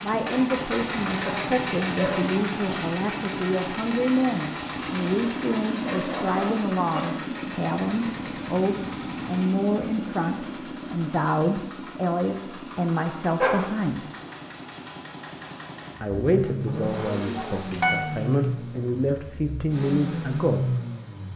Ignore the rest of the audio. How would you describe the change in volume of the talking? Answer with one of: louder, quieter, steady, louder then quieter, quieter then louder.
steady.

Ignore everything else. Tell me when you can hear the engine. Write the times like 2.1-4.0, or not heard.
0.0-21.3.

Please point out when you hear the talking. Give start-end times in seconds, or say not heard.
0.0-14.1, 16.0-20.8.